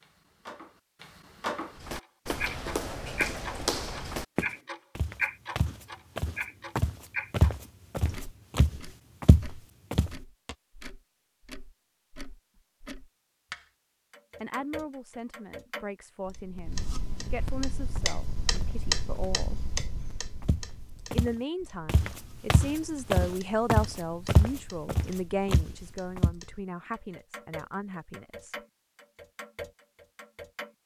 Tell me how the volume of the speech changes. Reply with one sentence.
The volume of the speech goes up, then down.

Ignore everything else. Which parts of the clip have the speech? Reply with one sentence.
You can hear the speech from 14.4 to 19.6 s and from 21.1 to 28.6 s.